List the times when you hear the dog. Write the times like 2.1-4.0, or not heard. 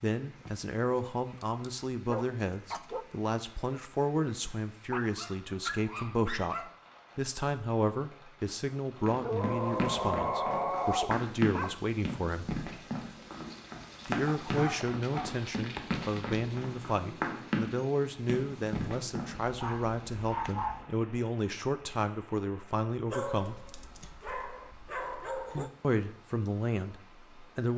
0.5-3.0, 4.9-6.7, 9.2-11.8, 14.4-15.4, 19.4-20.9, 23.1-25.7.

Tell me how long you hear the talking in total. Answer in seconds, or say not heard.
23 s.